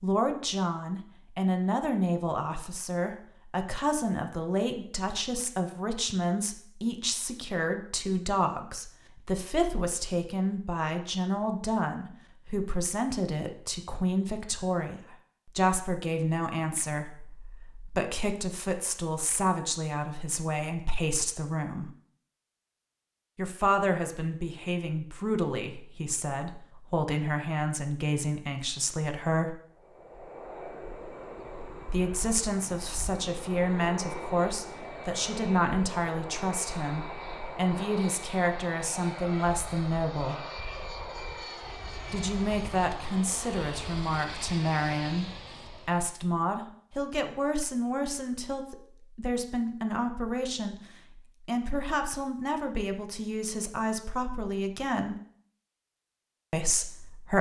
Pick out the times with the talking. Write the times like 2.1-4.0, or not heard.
0.0-21.9, 23.4-29.6, 31.9-40.4, 42.1-50.8, 51.5-55.1, 56.5-57.3.